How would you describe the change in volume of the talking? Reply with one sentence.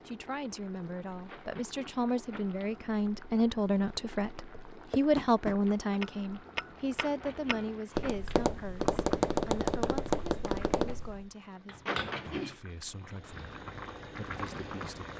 The volume of the talking goes up, then down.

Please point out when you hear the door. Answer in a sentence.
The door can be heard from 1.2 to 2.6 s, from 7.0 to 8.4 s and from 11.8 to 12.6 s.